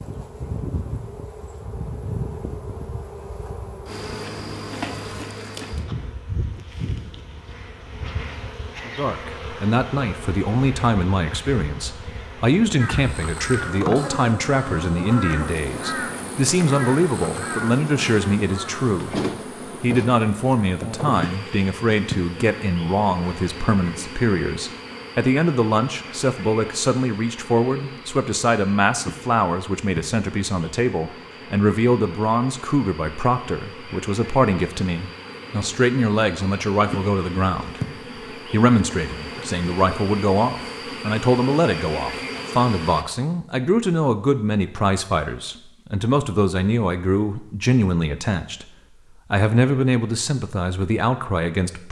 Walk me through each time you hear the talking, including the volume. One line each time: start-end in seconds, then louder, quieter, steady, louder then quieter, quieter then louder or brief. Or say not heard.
8.8-19.2 steady
19.8-48.6 steady
49.3-51.8 brief.